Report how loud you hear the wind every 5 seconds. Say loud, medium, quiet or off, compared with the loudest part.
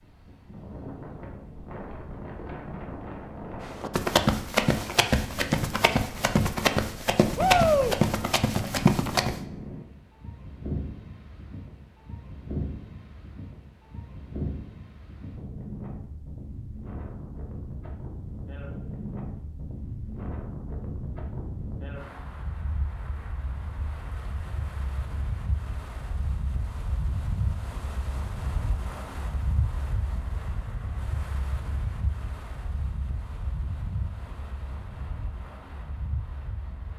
loud, loud, loud, loud, loud, loud, loud, medium.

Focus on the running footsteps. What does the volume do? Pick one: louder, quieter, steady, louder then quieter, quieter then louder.
steady.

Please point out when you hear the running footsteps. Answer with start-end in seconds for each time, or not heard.
3.6-9.4.